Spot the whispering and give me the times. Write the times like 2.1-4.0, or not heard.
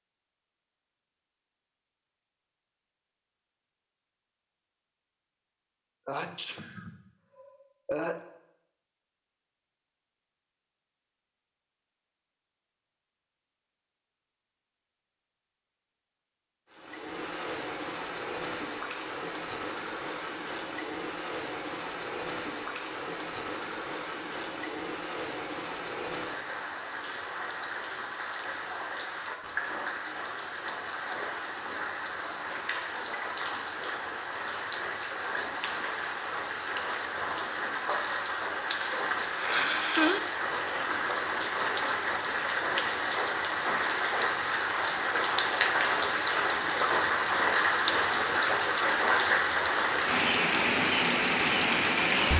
not heard.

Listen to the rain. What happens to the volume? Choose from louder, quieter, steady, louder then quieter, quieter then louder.
louder.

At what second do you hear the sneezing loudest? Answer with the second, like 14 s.
40 s.